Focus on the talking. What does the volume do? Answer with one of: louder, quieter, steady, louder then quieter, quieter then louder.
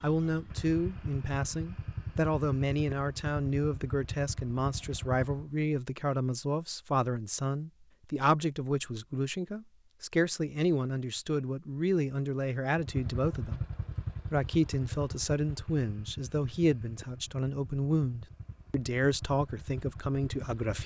steady.